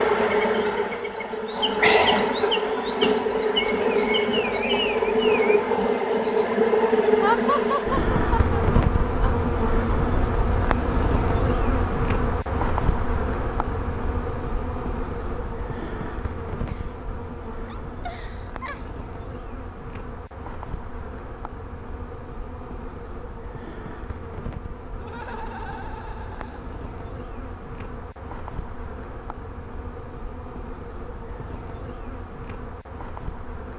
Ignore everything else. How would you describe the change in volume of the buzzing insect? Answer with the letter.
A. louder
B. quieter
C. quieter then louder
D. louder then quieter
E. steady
B.